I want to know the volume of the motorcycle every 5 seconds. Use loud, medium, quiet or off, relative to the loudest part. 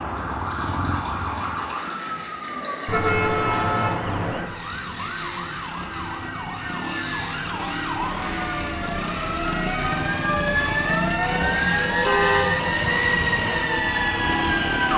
medium, loud, loud.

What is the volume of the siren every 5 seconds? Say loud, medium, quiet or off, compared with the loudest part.
medium, medium, loud.